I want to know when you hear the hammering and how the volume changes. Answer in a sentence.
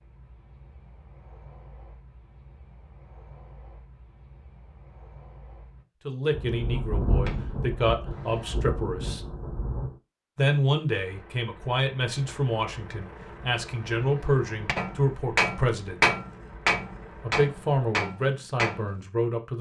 The hammering can be heard briefly from 7.0 to 8.6 s; and from 13.2 to 19.0 s, getting louder then quieter.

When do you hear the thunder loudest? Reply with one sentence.
The loudest moment of the thunder is at 7 seconds.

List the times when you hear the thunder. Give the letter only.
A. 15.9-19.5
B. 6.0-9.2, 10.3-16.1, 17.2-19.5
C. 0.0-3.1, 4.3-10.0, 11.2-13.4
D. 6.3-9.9
D.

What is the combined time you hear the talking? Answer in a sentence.
The talking can be heard for 11 seconds in total.